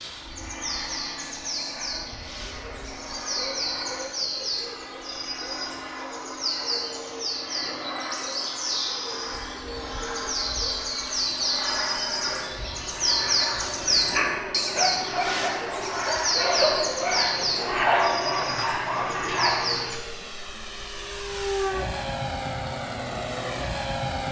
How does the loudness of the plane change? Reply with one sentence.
The volume of the plane goes up.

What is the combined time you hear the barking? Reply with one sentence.
The barking can be heard for 6 seconds in total.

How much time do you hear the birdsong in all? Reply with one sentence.
The birdsong can be heard for 20 seconds in total.